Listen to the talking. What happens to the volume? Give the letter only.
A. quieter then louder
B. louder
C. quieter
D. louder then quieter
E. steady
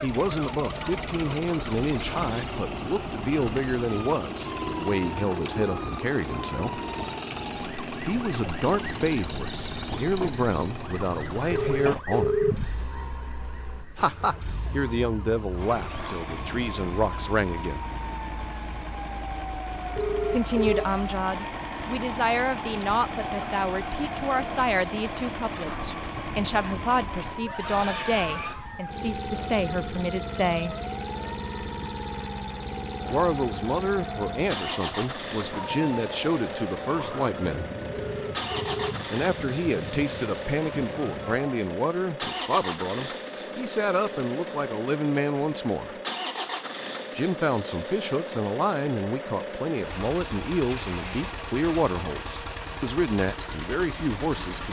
E.